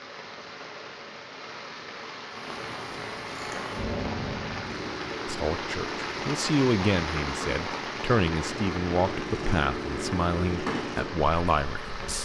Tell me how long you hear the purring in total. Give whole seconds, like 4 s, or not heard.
10 s.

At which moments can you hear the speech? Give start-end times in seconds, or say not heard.
5.2-12.2.